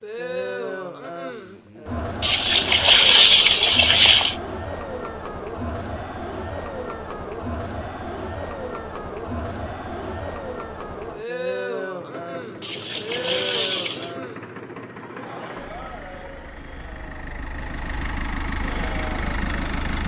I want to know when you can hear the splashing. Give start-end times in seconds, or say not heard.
2.2-4.3, 12.6-14.2.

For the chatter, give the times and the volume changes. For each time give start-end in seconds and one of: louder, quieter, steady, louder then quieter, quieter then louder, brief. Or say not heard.
0.0-20.0 quieter.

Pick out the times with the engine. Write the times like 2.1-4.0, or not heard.
11.9-20.0.